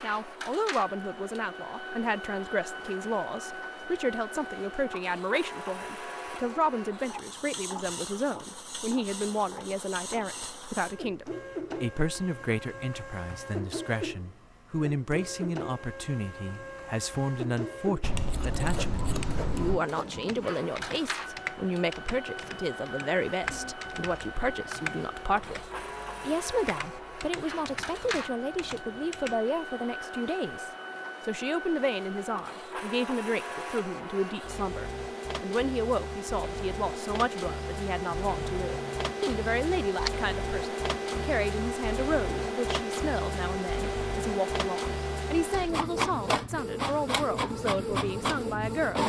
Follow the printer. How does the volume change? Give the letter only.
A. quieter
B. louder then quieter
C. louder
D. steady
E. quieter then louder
C.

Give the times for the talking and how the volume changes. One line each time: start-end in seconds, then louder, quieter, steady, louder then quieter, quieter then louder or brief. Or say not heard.
0.0-49.0 steady.